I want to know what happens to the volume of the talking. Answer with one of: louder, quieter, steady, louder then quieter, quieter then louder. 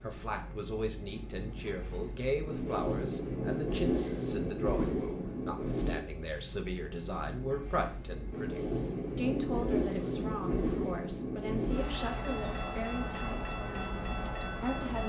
steady.